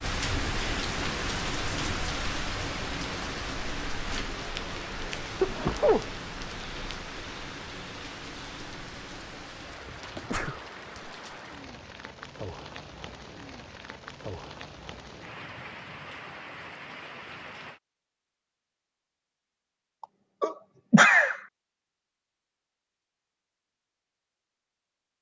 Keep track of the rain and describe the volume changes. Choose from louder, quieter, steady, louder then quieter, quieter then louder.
quieter.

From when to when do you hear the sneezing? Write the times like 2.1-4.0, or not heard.
5.0-6.1, 10.2-10.6, 20.4-21.4.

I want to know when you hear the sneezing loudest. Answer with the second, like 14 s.
21 s.